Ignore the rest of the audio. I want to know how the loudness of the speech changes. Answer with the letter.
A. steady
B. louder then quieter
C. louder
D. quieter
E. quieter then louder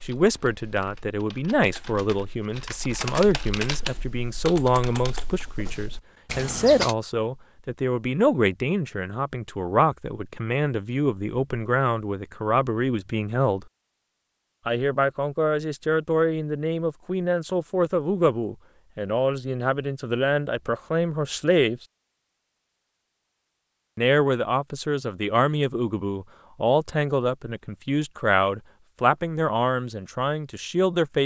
A.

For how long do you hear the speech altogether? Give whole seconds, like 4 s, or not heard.
28 s.